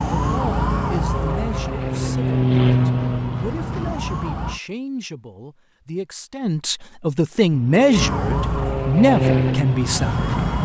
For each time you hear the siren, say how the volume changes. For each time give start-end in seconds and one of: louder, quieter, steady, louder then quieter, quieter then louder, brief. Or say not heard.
0.0-4.6 quieter then louder
7.9-10.5 brief.